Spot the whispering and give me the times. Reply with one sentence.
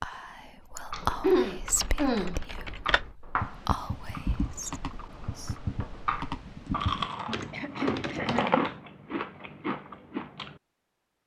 The whispering can be heard from 0.0 to 5.5 s.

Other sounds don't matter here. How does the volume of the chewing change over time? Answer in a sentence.
The loudness of the chewing goes up.